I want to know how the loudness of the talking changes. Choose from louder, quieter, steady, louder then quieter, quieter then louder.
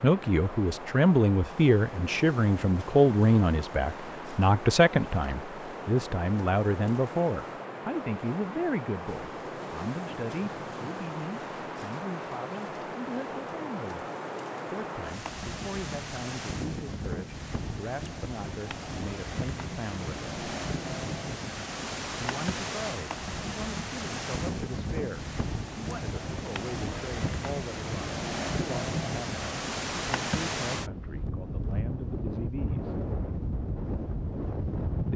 quieter.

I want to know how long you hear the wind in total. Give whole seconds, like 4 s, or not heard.
35 s.